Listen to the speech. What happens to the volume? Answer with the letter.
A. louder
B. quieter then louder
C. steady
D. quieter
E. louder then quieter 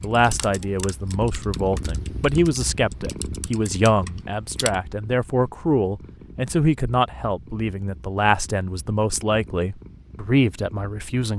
C.